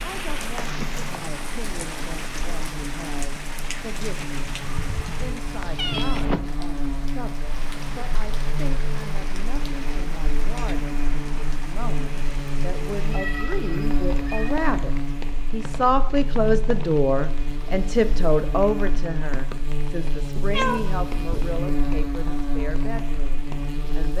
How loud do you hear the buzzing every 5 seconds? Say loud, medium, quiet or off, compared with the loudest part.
medium, loud, loud, loud, loud.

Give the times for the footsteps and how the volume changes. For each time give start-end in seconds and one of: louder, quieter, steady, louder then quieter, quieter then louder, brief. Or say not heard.
not heard.